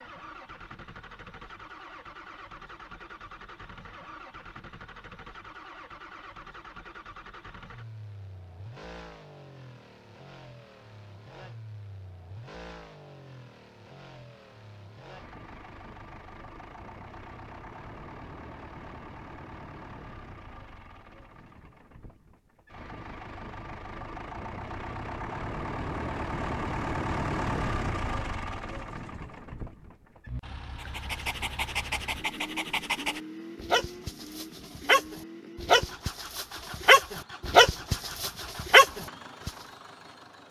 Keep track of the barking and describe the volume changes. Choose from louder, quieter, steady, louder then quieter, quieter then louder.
louder.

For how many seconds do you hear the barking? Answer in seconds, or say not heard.
9 s.